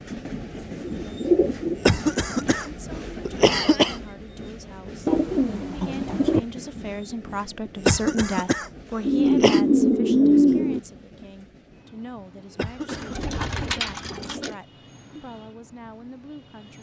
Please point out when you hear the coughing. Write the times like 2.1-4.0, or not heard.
1.8-4.0, 7.7-9.6, 12.3-13.3.